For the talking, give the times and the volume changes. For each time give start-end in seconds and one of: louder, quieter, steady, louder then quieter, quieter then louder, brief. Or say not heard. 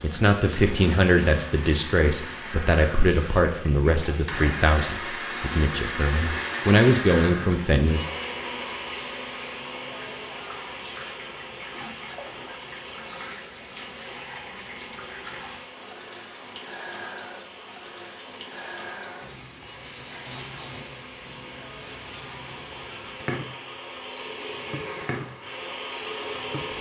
0.0-8.1 quieter then louder.